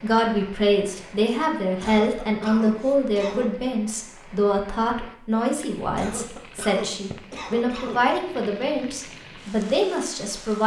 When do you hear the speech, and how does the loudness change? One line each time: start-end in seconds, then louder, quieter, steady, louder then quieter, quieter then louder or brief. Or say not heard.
0.0-10.6 steady.